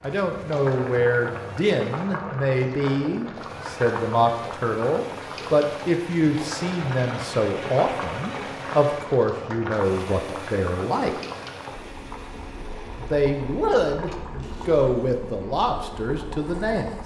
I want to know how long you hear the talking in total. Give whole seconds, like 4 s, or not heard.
15 s.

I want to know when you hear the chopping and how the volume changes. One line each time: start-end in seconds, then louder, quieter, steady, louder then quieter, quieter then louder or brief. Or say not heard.
not heard.